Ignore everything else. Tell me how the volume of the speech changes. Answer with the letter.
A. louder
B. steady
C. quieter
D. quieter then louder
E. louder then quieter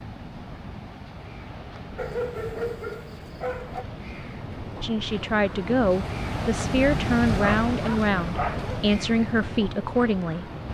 B.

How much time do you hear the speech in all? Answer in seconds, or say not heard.
6 s.